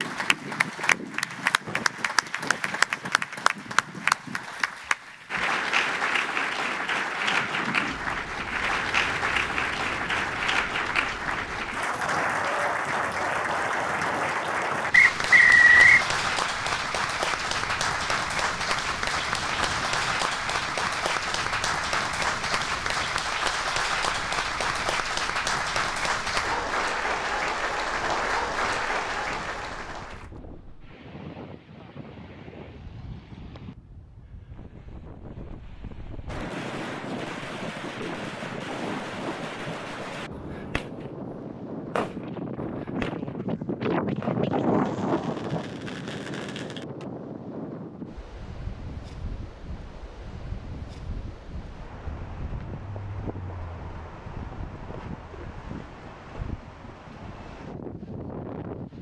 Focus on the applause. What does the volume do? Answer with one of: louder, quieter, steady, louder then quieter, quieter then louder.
steady.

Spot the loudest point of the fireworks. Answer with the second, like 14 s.
42 s.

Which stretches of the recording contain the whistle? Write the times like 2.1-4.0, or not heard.
14.9-16.1.